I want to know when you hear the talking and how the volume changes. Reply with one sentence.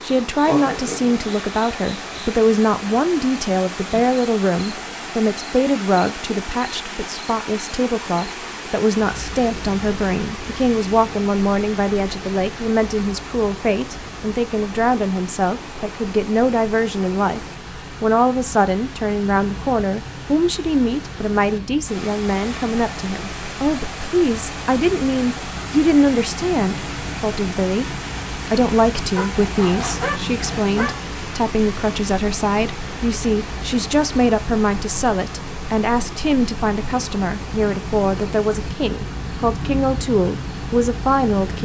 You can hear the talking from 0.0 to 41.6 s, at a steady volume.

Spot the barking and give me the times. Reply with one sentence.
The barking can be heard from 29.1 to 31.0 s.